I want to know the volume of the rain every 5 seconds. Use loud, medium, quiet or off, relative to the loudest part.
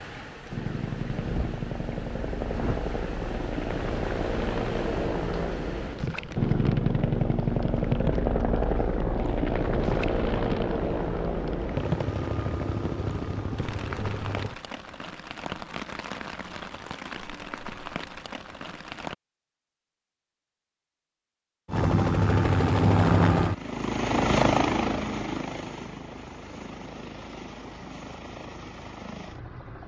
loud, loud, loud, loud, off, off.